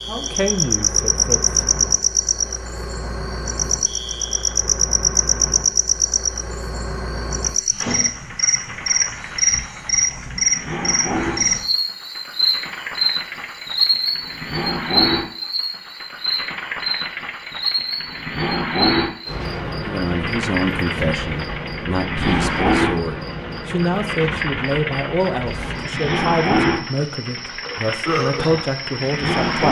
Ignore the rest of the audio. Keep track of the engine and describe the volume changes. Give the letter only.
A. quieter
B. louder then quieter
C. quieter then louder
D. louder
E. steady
D.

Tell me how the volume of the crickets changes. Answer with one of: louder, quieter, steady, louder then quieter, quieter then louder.
quieter.